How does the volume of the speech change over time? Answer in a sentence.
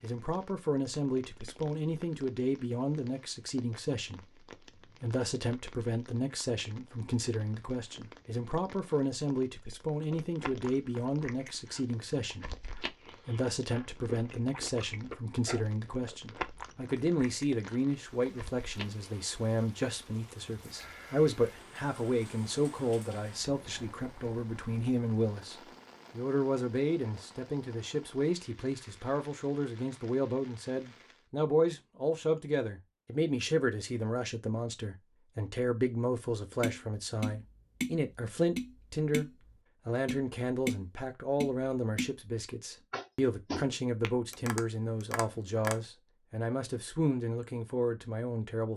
The loudness of the speech stays about the same.